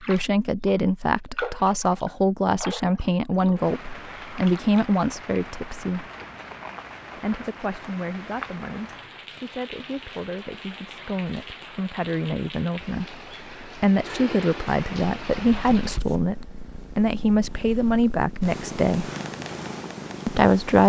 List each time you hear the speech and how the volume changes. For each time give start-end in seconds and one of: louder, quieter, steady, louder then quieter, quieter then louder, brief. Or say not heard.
0.1-6.0 steady
7.2-19.1 louder
20.2-20.8 brief.